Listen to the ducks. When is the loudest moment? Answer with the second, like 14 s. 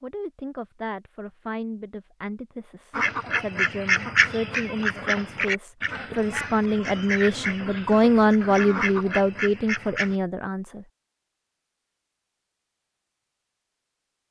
4 s.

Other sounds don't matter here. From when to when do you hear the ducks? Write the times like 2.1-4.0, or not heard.
2.9-10.2.